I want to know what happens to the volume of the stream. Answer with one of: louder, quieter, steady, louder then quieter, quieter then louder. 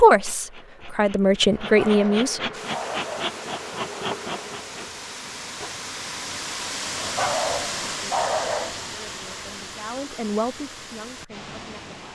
louder then quieter.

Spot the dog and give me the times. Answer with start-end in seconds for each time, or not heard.
1.6-3.4, 7.0-8.8.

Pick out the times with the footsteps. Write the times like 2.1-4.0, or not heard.
not heard.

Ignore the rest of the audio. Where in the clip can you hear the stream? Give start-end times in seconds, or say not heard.
2.5-12.1.